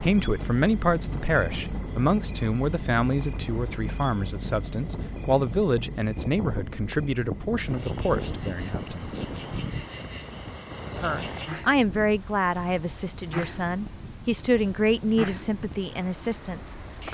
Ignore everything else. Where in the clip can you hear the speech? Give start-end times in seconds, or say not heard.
0.0-9.2, 10.9-17.0.